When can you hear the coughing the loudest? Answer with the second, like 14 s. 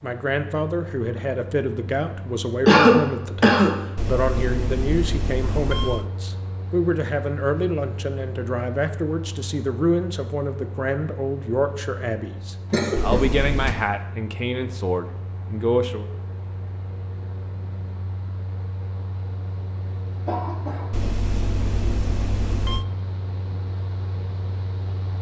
3 s.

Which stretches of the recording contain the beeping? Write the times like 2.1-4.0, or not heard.
4.0-6.0, 12.9-13.8, 20.9-22.9.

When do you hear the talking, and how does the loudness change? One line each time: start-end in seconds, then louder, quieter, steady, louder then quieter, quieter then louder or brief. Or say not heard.
0.0-16.1 steady.